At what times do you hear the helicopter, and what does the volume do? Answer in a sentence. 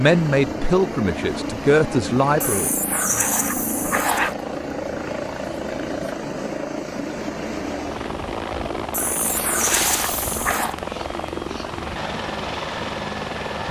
You can hear the helicopter from 0.0 to 13.6 s, at a steady volume.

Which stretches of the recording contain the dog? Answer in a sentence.
You can hear the dog from 2.4 to 4.3 s and from 8.9 to 10.8 s.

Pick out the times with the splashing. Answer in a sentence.
The splashing can be heard from 9.2 to 10.6 s.